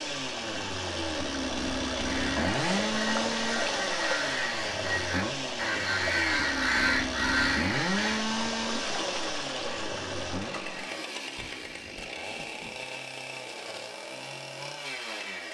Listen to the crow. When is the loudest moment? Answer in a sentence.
The volume of the crow peaks at 7 seconds.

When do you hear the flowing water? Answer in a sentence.
You can hear the flowing water from 0.0 to 10.9 s.